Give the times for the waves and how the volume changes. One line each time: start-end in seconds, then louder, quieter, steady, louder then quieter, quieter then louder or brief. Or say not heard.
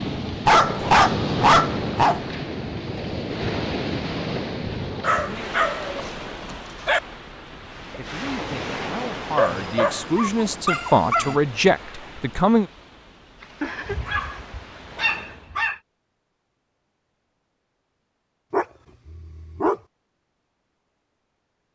0.0-15.6 quieter.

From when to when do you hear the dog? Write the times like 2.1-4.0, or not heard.
0.5-2.3, 5.0-7.0, 9.3-11.3, 13.6-15.8, 18.5-19.8.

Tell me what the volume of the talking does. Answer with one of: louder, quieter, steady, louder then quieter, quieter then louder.
louder.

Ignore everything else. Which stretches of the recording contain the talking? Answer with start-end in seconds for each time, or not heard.
8.0-12.7.